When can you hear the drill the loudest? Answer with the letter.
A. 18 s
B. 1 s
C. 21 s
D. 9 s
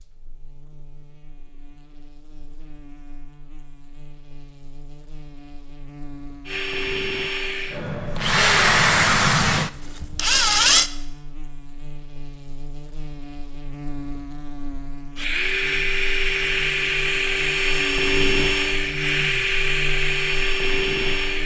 D.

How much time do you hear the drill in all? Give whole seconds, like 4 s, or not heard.
11 s.